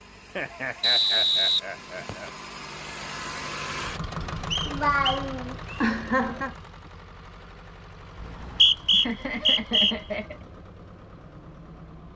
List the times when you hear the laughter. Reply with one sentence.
The laughter can be heard from 0.3 to 2.3 s, from 4.7 to 6.5 s and from 8.8 to 10.4 s.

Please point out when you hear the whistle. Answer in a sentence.
The whistle can be heard from 0.8 to 2.3 s, from 4.5 to 5.9 s and from 8.2 to 9.9 s.